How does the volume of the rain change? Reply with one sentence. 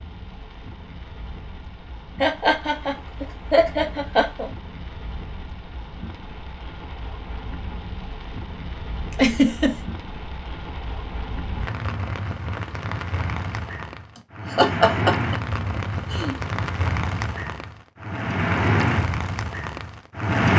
The loudness of the rain goes up.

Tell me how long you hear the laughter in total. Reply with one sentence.
The laughter can be heard for 5 seconds in total.